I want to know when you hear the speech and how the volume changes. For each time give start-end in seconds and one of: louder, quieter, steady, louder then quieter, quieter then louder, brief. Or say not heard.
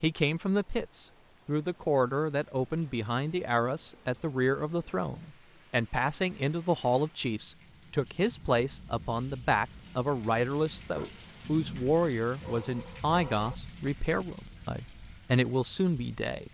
0.0-16.4 steady.